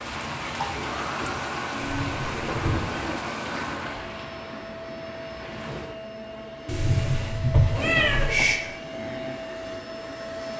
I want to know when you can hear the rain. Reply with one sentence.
The rain can be heard from 0.0 to 6.0 s.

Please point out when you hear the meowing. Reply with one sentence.
You can hear the meowing from 1.8 to 2.8 s and from 6.7 to 8.6 s.